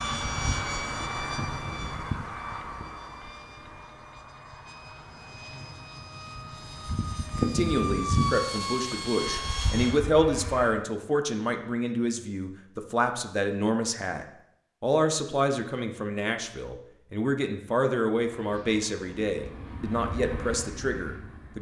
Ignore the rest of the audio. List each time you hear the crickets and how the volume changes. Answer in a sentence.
The crickets can't be heard in this clip.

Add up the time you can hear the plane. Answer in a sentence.
The plane can be heard for 14 seconds in total.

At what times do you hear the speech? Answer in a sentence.
The speech can be heard from 7.3 to 21.5 s.